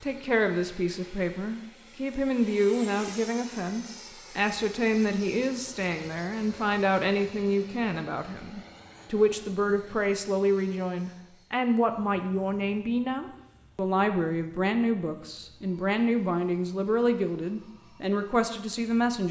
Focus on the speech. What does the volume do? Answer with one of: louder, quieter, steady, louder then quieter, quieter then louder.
steady.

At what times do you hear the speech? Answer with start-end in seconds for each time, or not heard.
0.0-19.2.